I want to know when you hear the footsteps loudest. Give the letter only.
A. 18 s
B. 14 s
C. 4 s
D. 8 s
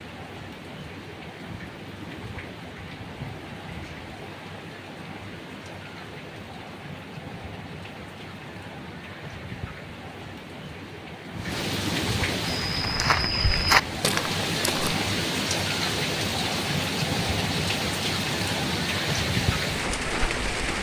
B.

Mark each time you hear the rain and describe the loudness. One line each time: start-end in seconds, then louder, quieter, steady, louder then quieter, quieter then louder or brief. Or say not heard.
0.0-20.7 louder.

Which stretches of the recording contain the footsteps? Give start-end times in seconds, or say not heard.
12.4-14.9.